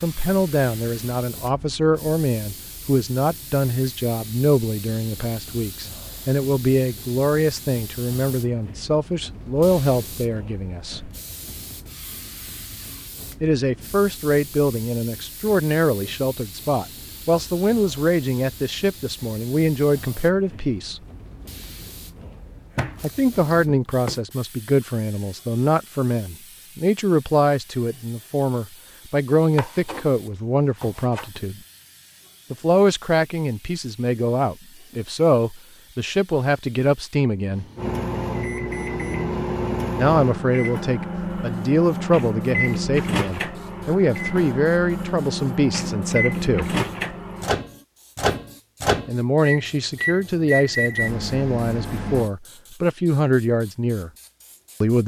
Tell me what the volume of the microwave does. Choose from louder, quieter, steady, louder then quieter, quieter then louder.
steady.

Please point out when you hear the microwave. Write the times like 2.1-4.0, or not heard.
37.8-52.3.